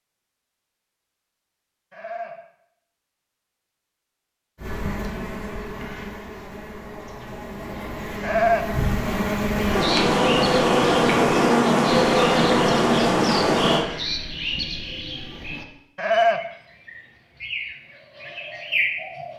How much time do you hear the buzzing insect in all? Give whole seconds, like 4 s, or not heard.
9 s.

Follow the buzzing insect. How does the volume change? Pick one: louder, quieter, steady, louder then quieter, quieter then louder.
louder.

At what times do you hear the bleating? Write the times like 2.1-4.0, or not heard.
1.9-2.4, 8.2-8.7, 15.9-16.4.